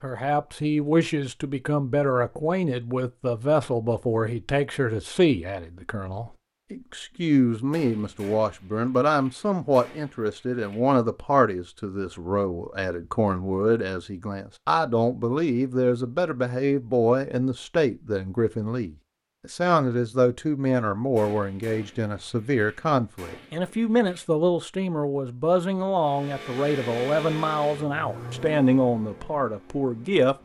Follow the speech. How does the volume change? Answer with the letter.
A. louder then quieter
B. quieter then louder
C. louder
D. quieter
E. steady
E.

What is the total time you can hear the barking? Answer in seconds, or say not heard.
not heard.